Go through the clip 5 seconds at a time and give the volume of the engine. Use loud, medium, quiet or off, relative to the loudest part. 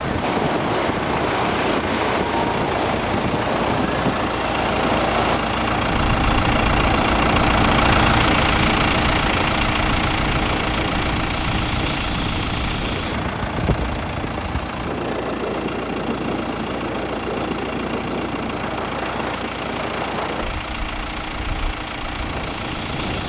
medium, loud, medium, medium, medium.